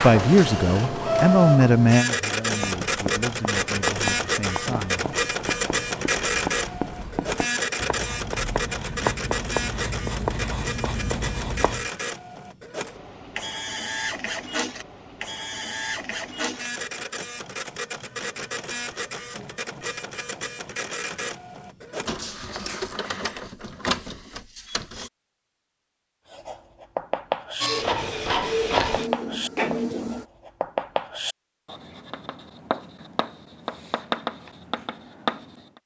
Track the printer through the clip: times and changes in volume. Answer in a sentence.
You can hear the printer from 0.0 to 25.1 s, getting quieter; and briefly from 27.6 to 30.2 s.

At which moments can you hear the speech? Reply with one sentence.
The speech can be heard from 0.0 to 5.0 s.